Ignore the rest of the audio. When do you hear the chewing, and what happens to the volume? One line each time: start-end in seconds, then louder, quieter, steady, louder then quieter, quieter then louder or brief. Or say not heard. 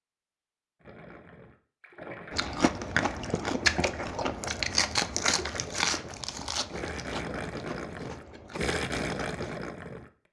2.3-9.6 quieter.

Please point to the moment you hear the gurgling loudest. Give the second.
9 s.